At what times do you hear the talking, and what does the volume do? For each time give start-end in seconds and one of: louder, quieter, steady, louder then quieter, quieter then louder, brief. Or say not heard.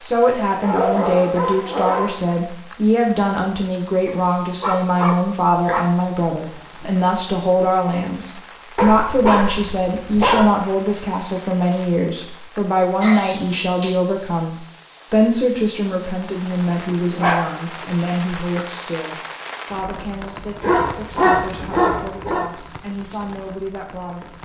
0.0-24.4 quieter.